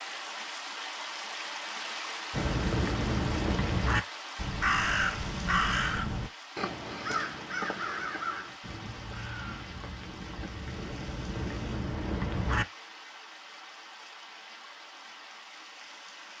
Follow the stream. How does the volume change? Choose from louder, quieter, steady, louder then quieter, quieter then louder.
quieter.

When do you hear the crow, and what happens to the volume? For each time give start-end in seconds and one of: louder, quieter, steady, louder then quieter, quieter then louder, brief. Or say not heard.
2.3-12.7 quieter then louder.